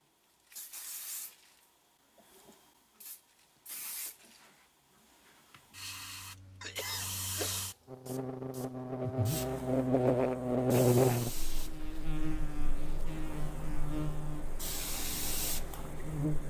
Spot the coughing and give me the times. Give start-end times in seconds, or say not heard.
6.6-7.7.